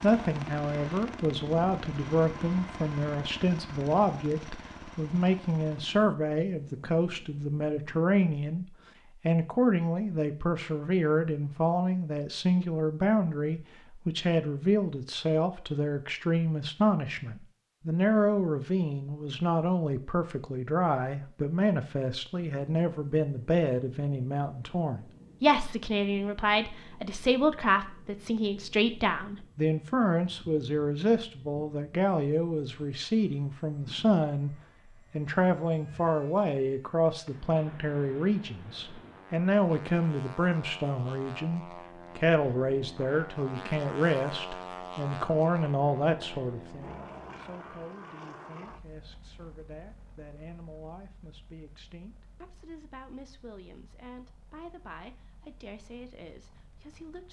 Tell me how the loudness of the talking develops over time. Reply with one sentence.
The loudness of the talking goes down.